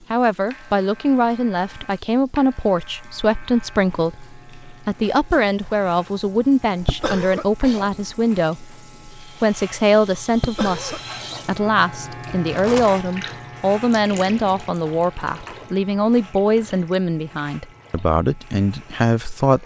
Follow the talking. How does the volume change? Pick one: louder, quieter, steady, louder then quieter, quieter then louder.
steady.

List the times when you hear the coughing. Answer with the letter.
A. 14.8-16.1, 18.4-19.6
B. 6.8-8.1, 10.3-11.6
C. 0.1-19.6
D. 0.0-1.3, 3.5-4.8
B.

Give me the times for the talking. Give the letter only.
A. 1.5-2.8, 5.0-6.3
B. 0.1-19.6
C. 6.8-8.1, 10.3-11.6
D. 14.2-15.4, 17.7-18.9
B.